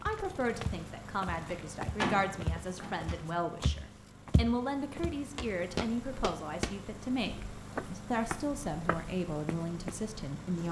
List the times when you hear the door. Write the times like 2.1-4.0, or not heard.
1.4-3.2.